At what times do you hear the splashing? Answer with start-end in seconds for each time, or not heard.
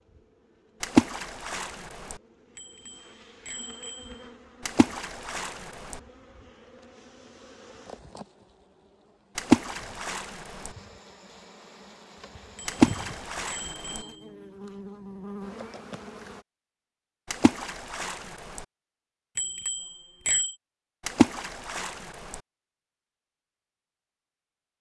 0.8-2.1, 4.7-6.0, 9.3-10.7, 12.7-14.0, 17.3-18.6, 21.1-22.4.